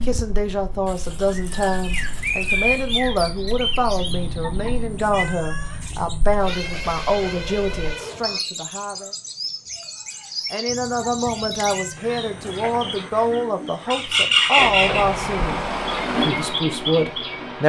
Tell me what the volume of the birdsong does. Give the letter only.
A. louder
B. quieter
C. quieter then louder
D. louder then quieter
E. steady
C.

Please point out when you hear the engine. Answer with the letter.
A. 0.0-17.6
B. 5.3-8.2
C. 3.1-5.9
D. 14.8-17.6
D.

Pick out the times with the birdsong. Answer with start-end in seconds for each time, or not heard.
0.0-17.6.